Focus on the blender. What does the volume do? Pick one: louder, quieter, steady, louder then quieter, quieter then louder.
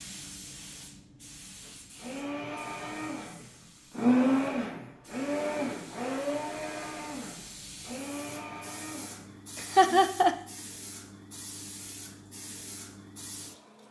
louder then quieter.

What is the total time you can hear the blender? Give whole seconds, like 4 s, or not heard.
8 s.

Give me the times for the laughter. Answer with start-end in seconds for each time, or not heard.
9.6-10.3.